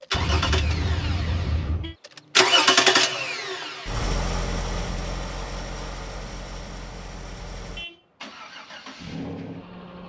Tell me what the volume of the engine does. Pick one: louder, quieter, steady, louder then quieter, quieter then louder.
louder then quieter.